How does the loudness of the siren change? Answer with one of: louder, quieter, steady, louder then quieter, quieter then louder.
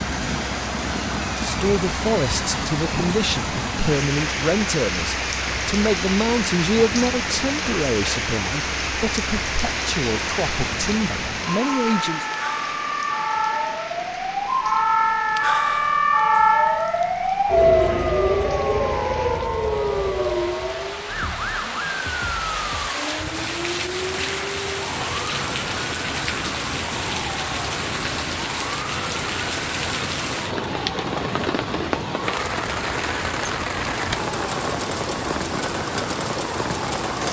louder then quieter.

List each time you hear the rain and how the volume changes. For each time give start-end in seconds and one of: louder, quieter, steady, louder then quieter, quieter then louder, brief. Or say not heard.
0.0-37.2 quieter then louder.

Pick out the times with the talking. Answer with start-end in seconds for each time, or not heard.
1.4-12.2.